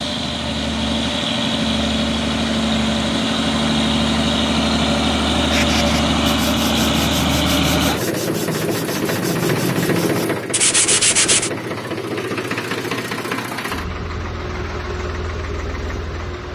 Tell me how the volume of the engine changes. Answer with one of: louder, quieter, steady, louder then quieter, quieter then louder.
quieter.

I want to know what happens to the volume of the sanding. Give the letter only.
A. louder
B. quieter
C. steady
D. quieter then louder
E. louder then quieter
A.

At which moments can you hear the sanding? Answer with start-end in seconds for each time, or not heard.
5.5-11.5.